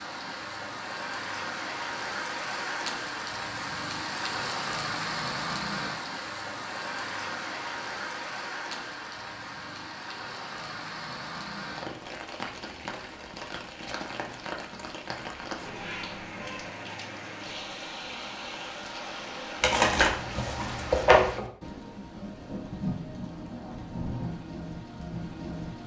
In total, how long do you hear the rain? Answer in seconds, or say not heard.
26 s.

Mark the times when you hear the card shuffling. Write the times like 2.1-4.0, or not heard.
19.6-21.5.